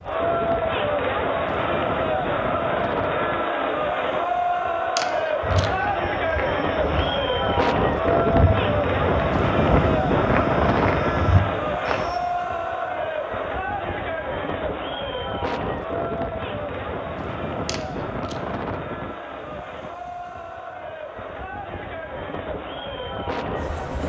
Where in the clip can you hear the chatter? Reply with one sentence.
You can hear the chatter from 0.0 to 24.0 s.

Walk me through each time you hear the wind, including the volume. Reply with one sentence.
You can hear the wind from 0.0 to 24.0 s, getting louder then quieter.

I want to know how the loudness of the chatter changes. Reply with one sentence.
The volume of the chatter goes down.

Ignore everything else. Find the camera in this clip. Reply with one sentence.
You can hear the camera from 5.0 to 5.7 s and from 17.6 to 18.4 s.